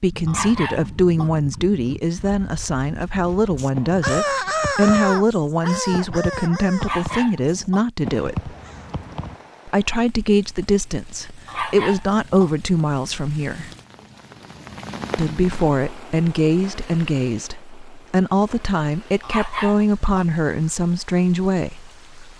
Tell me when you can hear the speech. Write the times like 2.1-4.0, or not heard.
0.0-8.6, 9.7-13.7, 15.2-22.0.